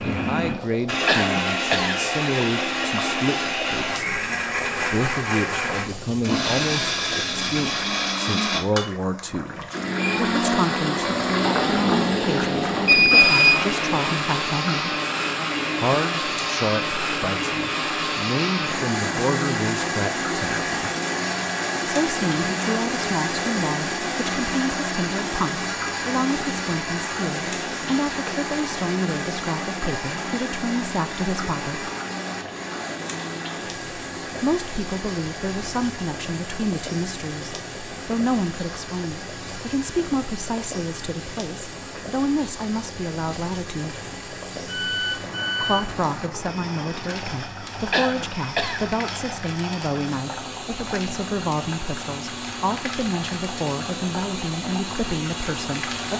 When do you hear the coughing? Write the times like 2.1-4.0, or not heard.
1.1-2.0, 47.9-48.9.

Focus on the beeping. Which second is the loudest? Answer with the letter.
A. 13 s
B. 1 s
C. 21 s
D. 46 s
A.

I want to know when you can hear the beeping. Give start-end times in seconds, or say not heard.
12.8-13.6, 44.6-46.0.